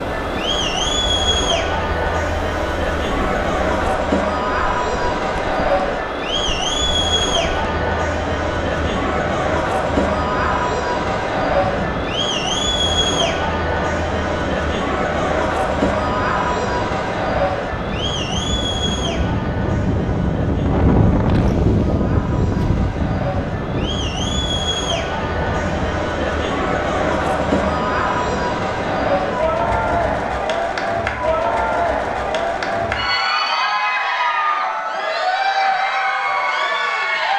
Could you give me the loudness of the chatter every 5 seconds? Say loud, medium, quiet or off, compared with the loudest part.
loud, loud, loud, loud, medium, loud, loud, loud.